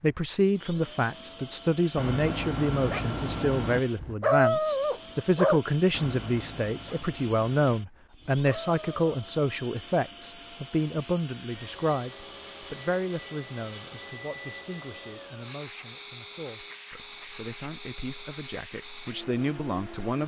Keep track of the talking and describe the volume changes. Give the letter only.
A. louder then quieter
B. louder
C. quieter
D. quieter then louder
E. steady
C.